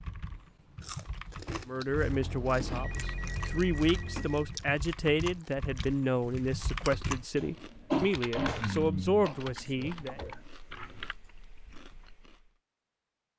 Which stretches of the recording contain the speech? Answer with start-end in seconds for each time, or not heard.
1.6-10.2.